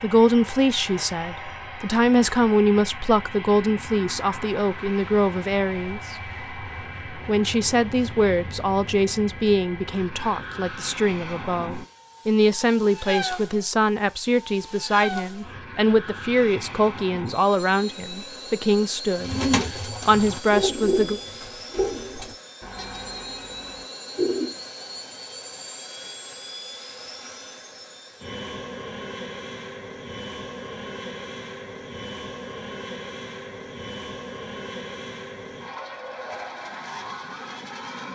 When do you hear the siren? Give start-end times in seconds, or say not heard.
not heard.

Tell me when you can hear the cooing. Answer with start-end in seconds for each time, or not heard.
19.1-24.6.